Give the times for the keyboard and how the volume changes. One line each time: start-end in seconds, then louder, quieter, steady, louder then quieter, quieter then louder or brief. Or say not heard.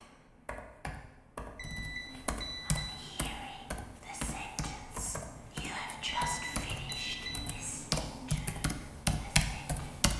0.0-10.1 louder.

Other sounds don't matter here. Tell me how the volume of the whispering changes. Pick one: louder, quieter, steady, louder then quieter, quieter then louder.
louder then quieter.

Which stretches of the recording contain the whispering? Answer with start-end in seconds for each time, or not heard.
2.6-9.9.